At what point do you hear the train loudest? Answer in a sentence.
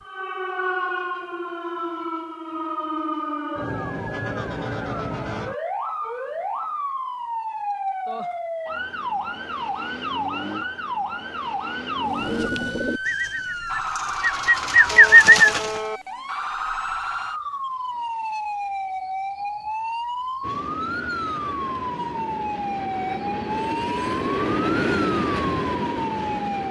The loudest moment of the train is at 25 seconds.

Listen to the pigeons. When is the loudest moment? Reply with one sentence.
The volume of the pigeons peaks at 15 seconds.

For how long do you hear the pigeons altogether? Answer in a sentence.
You can hear the pigeons for 4 seconds altogether.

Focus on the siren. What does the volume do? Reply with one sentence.
The volume of the siren stays about the same.